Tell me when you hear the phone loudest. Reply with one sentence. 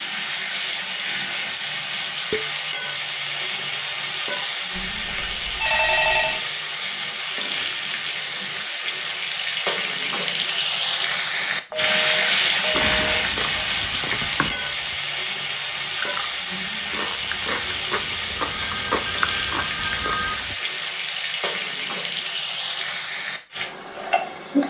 The loudest moment of the phone is at 6 seconds.